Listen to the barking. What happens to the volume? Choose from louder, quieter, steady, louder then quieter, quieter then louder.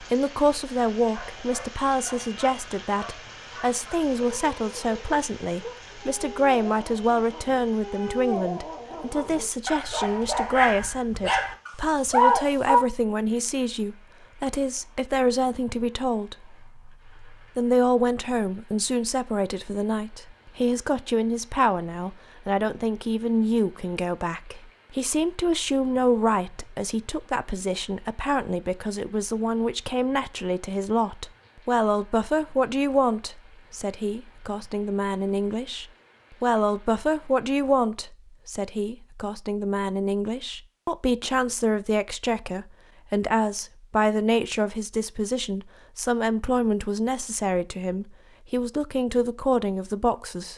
louder.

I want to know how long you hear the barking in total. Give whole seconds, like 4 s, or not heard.
12 s.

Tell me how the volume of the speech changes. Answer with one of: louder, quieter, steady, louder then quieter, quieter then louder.
steady.